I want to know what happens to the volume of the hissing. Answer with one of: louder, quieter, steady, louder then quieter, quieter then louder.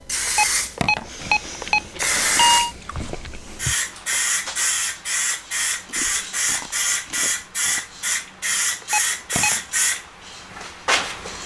steady.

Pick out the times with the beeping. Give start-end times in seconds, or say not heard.
0.2-2.8, 8.8-9.6.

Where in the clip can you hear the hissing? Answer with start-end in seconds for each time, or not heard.
0.0-11.4.